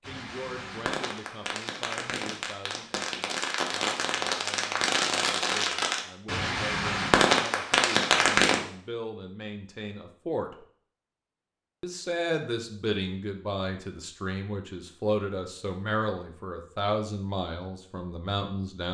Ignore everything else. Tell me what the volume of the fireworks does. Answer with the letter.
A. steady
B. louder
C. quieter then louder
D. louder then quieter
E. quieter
B.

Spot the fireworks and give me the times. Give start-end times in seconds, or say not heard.
0.0-8.6.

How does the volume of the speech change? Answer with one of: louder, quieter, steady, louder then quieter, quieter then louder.
louder.